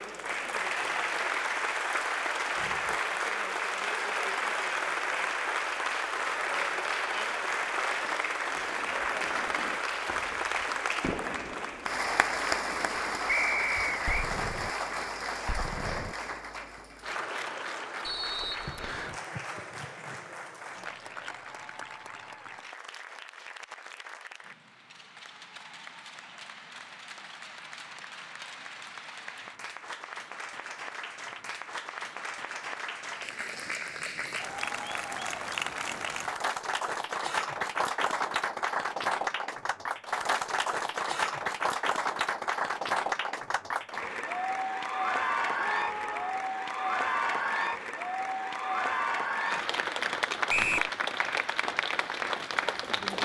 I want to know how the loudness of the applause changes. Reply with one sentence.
The loudness of the applause goes down, then up.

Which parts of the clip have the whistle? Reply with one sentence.
The whistle can be heard from 13.2 to 14.3 s, from 18.1 to 19.1 s and from 50.5 to 50.9 s.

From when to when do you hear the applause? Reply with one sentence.
The applause can be heard from 0.0 to 53.2 s.